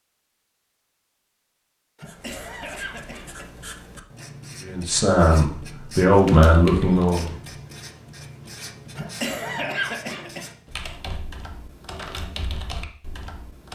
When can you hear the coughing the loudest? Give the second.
10 s.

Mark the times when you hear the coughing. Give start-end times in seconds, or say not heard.
1.9-3.5, 8.9-10.4.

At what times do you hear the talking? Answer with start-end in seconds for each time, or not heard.
4.6-7.3.